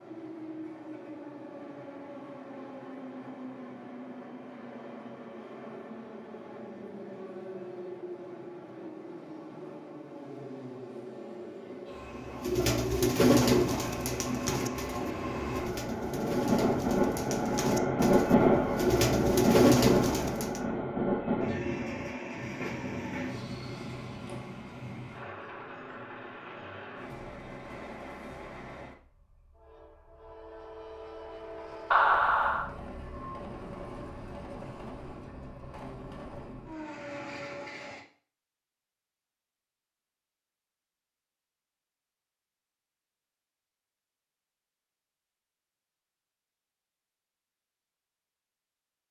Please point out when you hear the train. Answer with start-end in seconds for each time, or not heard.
0.0-38.0.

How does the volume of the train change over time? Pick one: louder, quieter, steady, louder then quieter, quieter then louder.
louder then quieter.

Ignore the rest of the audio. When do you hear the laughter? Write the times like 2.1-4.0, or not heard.
31.9-32.7.